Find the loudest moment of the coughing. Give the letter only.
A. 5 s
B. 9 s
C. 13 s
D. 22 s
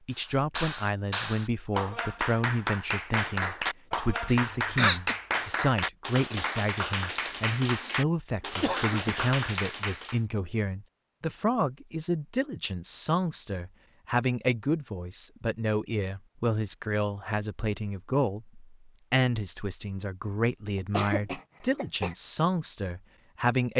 A.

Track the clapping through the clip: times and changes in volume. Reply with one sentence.
The clapping can be heard from 0.1 to 10.2 s, at a steady volume.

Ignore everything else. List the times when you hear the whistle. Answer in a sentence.
The whistle can't be heard in this clip.